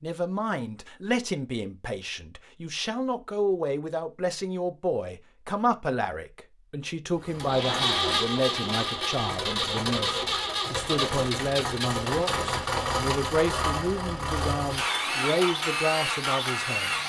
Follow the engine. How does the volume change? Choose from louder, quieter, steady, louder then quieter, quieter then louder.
steady.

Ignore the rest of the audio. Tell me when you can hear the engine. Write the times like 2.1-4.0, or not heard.
7.2-17.0.